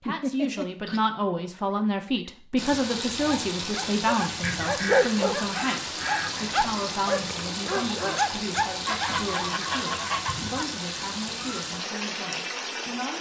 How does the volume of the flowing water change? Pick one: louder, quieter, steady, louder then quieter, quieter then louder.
steady.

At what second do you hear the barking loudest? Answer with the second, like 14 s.
5 s.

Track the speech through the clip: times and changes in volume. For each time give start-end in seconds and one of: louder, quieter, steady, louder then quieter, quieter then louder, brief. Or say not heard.
0.0-13.1 quieter.